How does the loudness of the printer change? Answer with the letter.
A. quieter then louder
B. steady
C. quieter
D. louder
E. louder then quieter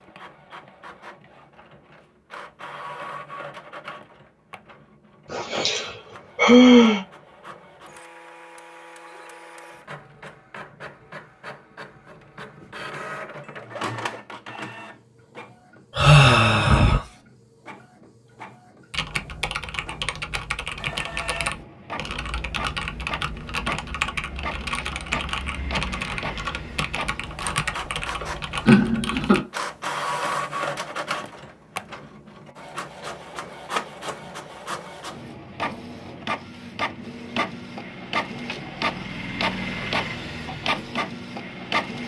D.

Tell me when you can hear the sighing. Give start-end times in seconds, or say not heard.
5.3-7.0, 15.9-17.1, 28.2-29.4.